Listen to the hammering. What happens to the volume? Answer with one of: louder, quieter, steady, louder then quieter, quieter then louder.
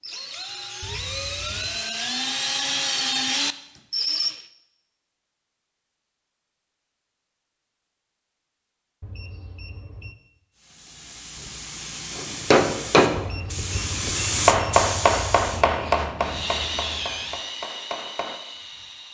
quieter.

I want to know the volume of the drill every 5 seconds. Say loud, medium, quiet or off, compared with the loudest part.
loud, off, off, medium.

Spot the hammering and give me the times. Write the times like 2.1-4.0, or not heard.
12.2-18.4.